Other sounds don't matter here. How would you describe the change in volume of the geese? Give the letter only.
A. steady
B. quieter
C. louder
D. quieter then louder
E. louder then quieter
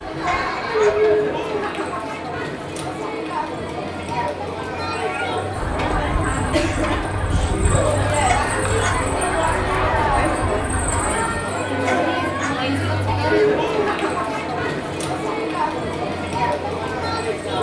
A.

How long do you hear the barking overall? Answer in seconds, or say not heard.
2 s.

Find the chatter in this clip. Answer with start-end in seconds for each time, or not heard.
0.0-17.5.